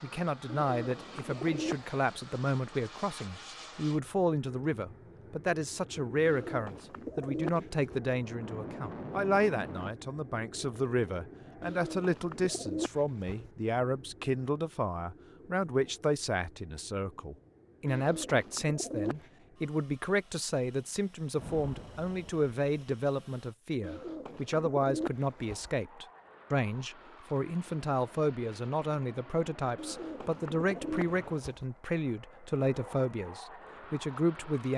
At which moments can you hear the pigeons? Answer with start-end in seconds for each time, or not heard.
0.5-1.9, 6.2-8.0, 11.6-13.5, 17.9-19.3, 23.8-25.7, 29.8-31.6.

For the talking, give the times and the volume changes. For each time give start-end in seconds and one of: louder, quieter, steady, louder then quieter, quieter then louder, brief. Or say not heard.
0.0-34.7 steady.